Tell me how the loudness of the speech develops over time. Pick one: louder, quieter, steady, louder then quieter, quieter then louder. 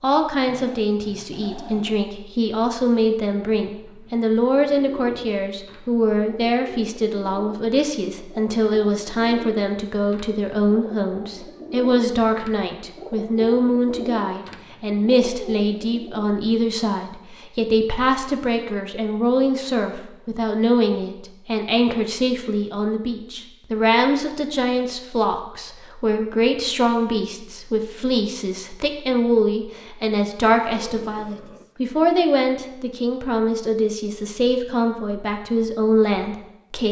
steady.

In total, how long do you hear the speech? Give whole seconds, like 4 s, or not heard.
37 s.